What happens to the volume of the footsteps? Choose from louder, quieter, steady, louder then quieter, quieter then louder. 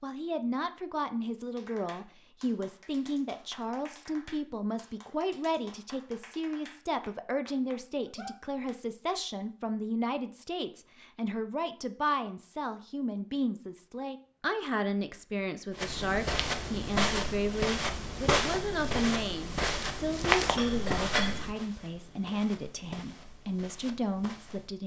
quieter.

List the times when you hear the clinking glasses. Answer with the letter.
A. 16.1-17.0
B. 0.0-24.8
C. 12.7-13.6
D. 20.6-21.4
D.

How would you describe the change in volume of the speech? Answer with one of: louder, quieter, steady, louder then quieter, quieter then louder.
steady.